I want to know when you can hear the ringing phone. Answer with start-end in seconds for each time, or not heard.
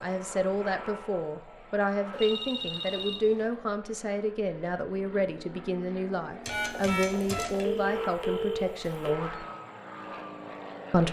2.1-3.5, 6.5-9.2.